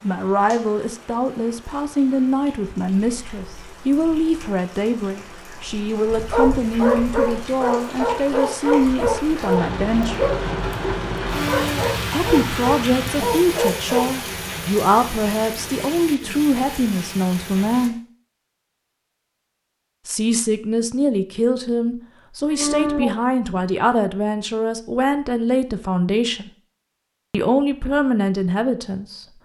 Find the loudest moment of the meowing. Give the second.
23 s.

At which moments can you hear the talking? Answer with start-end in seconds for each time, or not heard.
0.0-10.2, 12.1-17.9, 20.1-26.5, 27.3-29.2.